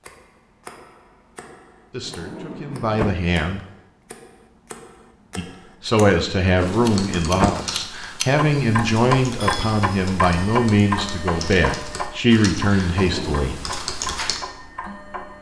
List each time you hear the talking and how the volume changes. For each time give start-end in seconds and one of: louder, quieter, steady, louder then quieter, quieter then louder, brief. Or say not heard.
1.9-3.6 brief
5.3-13.6 steady.